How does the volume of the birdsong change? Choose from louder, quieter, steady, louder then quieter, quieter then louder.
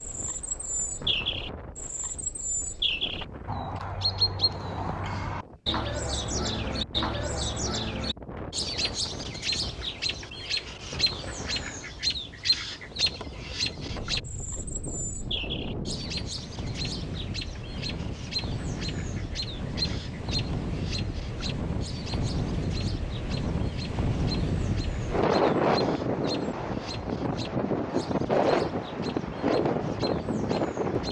quieter.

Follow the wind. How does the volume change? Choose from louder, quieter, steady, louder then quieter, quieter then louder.
louder.